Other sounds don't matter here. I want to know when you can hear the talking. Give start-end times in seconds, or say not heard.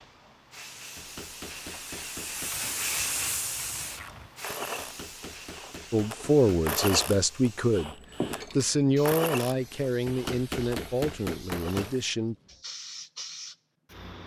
5.9-12.3.